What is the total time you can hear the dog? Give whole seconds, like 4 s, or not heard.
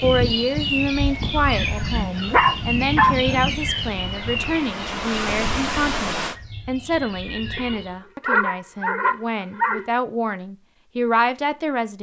4 s.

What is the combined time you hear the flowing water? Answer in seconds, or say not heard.
6 s.